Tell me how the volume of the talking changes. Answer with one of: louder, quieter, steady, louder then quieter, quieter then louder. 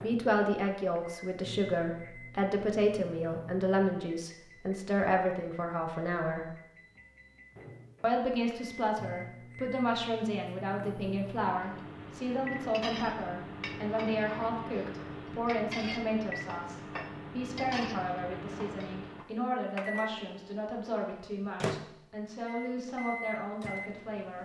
quieter.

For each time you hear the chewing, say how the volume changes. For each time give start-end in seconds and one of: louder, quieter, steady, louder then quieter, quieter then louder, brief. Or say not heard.
not heard.